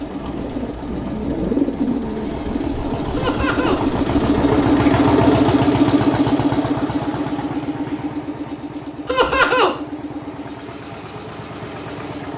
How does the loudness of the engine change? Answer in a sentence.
The volume of the engine goes up, then down.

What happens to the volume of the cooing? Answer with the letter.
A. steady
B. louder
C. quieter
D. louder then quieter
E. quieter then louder
D.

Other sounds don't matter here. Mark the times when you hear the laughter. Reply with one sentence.
The laughter can be heard from 3.1 to 3.8 s and from 9.1 to 9.7 s.